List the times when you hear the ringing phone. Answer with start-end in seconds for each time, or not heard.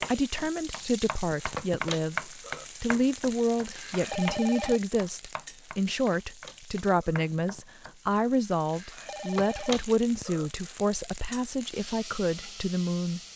3.8-4.8, 8.7-9.8.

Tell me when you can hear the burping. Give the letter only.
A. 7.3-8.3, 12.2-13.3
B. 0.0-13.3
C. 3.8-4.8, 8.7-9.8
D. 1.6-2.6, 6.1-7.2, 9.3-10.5
D.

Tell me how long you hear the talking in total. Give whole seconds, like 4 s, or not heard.
13 s.